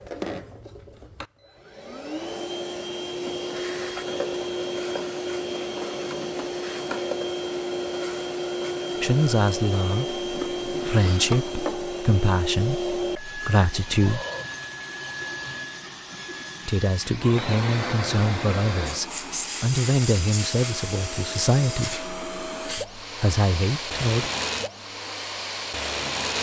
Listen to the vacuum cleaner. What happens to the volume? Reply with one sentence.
The loudness of the vacuum cleaner stays about the same.